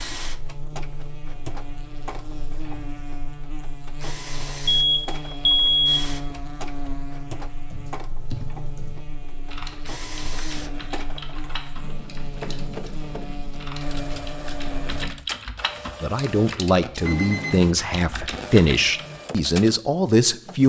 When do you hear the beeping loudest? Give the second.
6 s.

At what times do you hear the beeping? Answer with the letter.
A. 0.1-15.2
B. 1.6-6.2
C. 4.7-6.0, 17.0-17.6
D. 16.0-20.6
C.